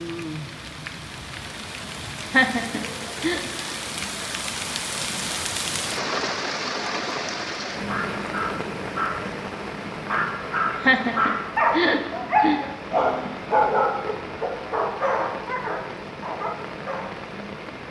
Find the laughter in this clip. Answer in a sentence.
The laughter can be heard from 2.2 to 3.4 s and from 10.7 to 12.6 s.